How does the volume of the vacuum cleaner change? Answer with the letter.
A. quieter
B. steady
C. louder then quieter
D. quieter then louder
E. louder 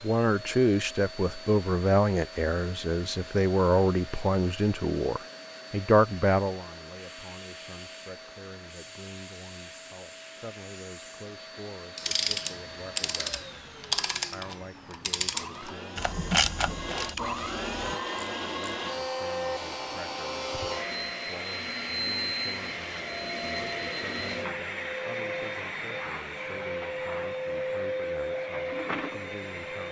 E.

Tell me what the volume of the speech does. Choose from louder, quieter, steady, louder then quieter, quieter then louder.
quieter.